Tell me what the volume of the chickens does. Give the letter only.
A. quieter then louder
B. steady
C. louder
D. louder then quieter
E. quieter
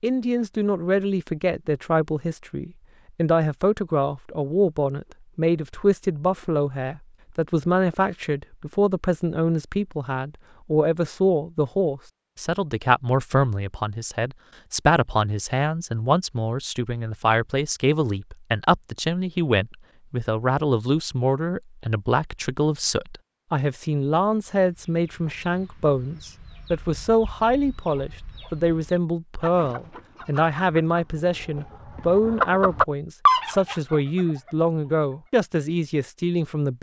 C.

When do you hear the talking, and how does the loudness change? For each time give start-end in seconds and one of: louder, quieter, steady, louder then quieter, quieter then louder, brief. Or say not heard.
0.0-36.7 steady.